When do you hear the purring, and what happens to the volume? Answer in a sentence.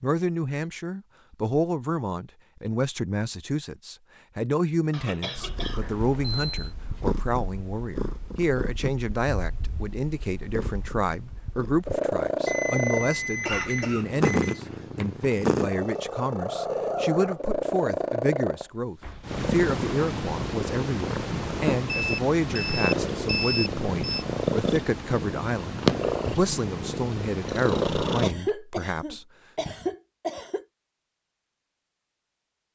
The purring can be heard from 5.3 to 28.4 s, getting louder.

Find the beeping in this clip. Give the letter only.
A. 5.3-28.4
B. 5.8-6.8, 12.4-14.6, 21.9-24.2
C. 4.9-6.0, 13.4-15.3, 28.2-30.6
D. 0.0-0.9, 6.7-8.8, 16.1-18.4
B.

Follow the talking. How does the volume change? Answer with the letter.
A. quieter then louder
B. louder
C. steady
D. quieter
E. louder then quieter
C.